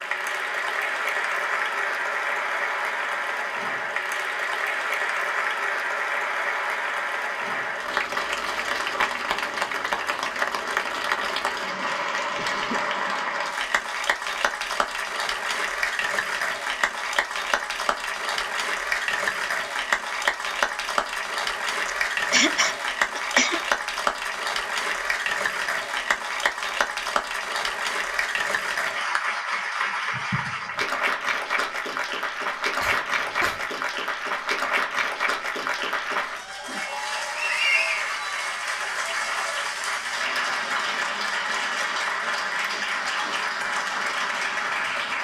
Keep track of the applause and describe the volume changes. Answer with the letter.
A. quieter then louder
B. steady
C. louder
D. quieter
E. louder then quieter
B.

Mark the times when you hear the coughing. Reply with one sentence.
You can hear the coughing from 12.3 to 12.8 s, from 21.9 to 23.6 s and from 32.8 to 33.6 s.